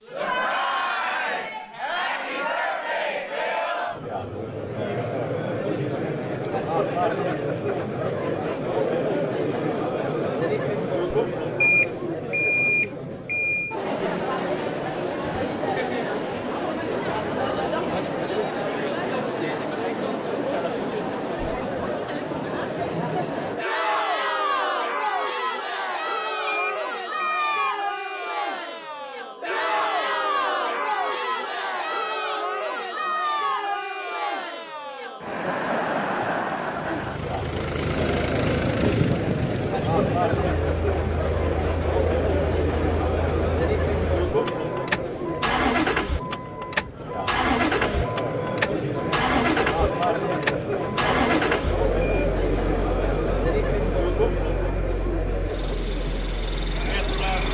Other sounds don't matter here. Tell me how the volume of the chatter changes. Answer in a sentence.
The volume of the chatter stays about the same.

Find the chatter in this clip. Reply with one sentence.
You can hear the chatter from 0.0 to 57.4 s.